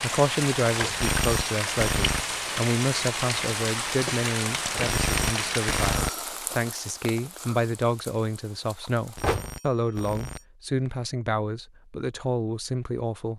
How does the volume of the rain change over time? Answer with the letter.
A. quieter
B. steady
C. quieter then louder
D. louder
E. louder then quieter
A.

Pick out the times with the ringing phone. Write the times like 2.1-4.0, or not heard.
1.0-2.2, 4.8-6.2, 9.2-10.4.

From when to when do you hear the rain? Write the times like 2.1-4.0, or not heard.
0.0-9.3.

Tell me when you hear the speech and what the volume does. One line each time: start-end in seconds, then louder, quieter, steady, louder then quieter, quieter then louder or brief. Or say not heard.
0.0-13.3 steady.